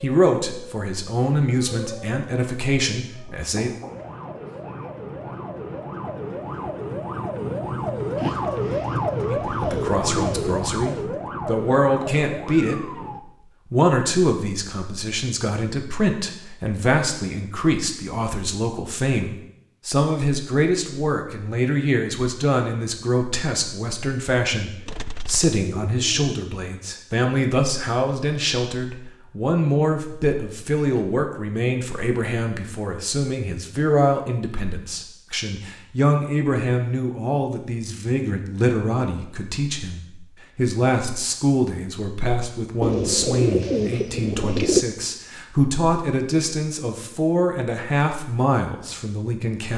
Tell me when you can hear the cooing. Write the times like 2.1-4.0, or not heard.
8.2-11.1, 24.9-26.4, 42.8-44.9.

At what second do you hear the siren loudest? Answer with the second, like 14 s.
9 s.